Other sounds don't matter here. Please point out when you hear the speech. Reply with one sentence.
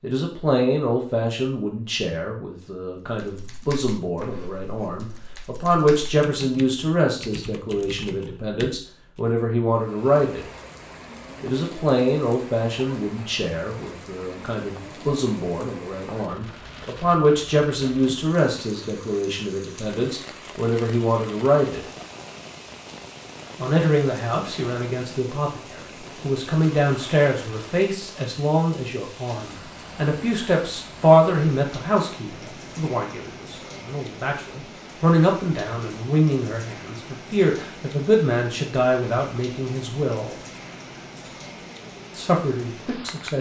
The speech can be heard from 0.0 to 10.4 s, from 11.4 to 21.8 s, from 23.6 to 40.4 s and from 42.1 to 43.3 s.